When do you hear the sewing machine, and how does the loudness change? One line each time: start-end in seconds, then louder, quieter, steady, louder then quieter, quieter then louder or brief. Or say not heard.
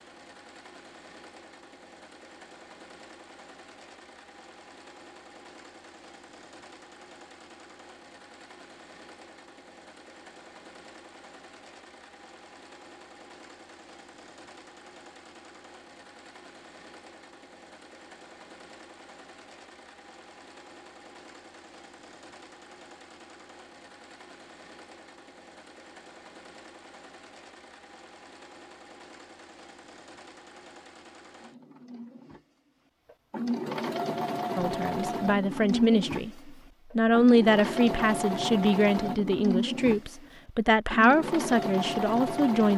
0.0-42.7 louder.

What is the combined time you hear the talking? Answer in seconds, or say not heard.
8 s.